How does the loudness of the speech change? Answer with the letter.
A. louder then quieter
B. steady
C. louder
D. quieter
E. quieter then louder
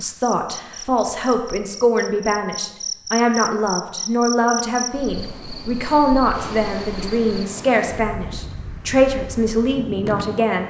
B.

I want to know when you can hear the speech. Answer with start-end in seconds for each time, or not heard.
0.0-10.6.